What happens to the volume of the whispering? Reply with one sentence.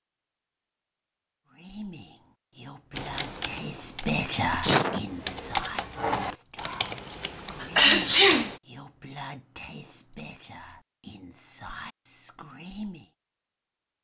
The volume of the whispering goes up, then down.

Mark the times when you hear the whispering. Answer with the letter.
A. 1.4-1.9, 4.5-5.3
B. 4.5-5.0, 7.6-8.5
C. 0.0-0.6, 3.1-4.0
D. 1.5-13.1
D.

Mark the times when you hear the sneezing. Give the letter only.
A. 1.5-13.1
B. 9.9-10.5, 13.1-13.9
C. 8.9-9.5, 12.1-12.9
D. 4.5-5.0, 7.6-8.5
D.